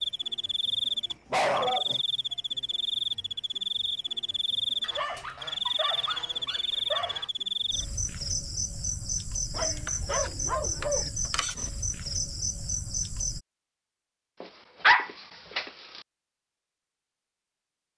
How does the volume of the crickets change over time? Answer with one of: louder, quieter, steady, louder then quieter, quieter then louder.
steady.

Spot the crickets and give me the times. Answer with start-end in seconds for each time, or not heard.
0.0-13.4.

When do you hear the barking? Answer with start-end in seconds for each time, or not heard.
1.1-2.0, 4.8-7.3, 9.5-11.1, 14.4-15.7.